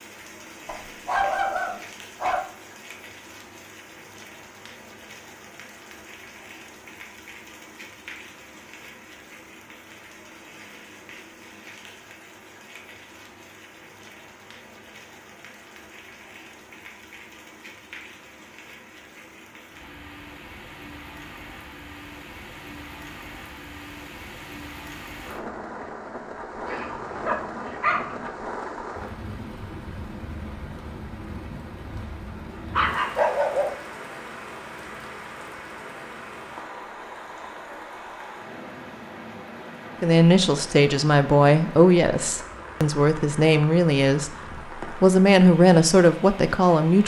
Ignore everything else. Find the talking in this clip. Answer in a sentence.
You can hear the talking from 40.0 to 47.0 s.